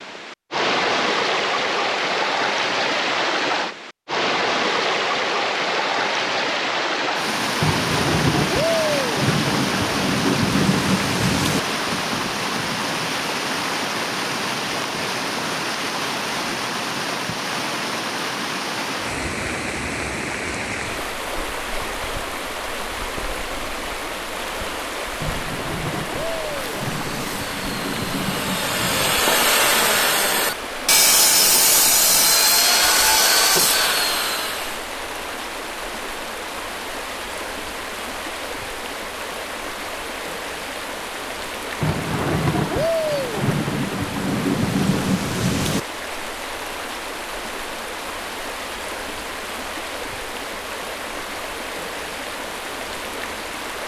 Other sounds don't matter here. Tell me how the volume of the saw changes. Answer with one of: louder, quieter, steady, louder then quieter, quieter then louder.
louder.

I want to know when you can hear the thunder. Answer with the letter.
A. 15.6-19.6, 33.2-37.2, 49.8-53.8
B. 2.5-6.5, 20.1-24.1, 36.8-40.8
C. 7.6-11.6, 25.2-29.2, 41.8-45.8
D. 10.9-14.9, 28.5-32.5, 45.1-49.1
C.